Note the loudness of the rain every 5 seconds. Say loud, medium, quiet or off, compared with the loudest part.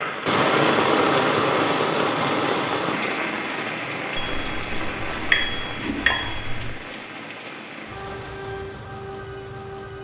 loud, medium.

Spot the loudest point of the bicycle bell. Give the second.
5 s.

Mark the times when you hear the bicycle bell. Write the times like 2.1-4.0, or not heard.
4.2-6.8.